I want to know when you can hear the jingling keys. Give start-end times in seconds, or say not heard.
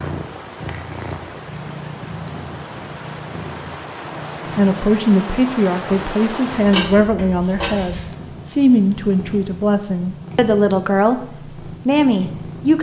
6.7-8.1.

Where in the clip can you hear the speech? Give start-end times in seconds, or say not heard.
4.5-11.2, 11.8-12.7.